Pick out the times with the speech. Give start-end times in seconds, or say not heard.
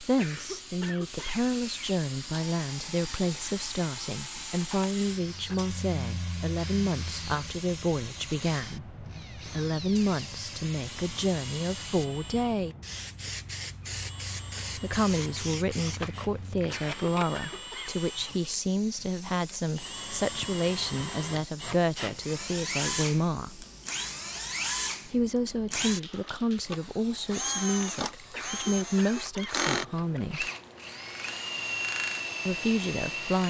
0.0-12.8, 14.8-23.6, 25.1-30.5, 32.5-33.4.